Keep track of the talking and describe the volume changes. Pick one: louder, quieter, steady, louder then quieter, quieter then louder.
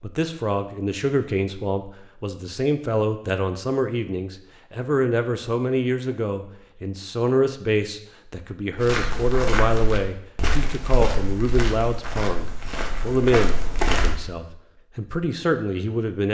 steady.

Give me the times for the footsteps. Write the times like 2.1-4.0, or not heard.
8.8-14.2.